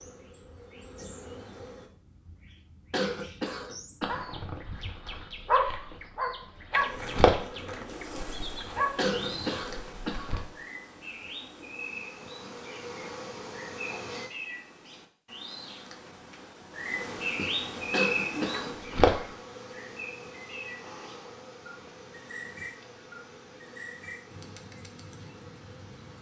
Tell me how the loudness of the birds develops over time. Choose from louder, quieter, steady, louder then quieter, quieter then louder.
louder then quieter.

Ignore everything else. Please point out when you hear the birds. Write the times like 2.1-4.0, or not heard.
0.0-26.1.